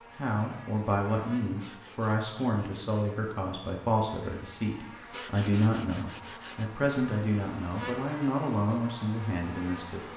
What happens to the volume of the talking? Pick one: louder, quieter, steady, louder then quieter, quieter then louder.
steady.